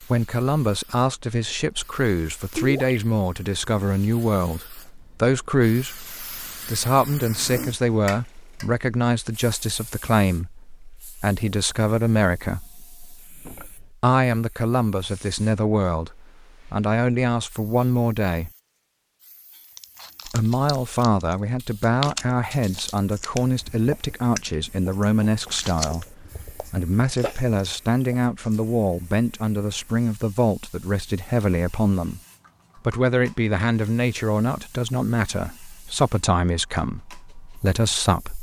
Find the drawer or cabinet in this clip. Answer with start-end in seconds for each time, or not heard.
13.2-13.9.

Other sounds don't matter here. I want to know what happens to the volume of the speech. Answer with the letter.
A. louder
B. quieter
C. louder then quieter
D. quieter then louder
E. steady
E.